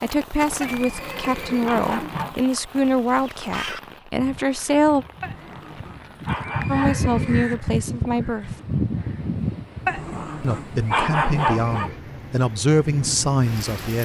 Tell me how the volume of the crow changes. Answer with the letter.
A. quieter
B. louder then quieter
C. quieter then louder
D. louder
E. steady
C.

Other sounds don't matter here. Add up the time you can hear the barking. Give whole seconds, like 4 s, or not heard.
6 s.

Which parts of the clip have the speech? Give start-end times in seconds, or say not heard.
0.0-5.0, 6.7-8.5, 10.4-14.0.